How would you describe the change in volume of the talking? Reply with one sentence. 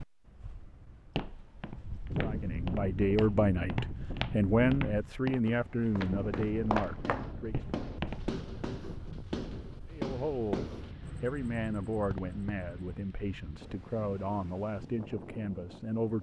The loudness of the talking goes down.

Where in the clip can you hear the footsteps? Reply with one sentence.
The footsteps can be heard from 1.1 to 8.4 s.